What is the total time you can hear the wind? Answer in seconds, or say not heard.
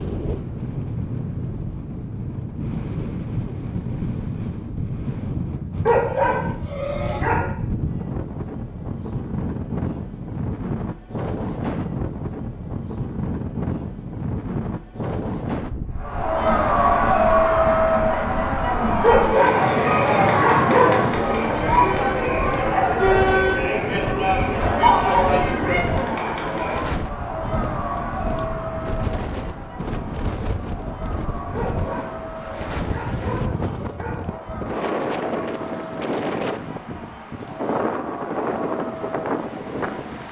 40 s.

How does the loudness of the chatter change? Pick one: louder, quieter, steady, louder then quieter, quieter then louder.
quieter.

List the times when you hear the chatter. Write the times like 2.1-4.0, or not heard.
15.9-40.2.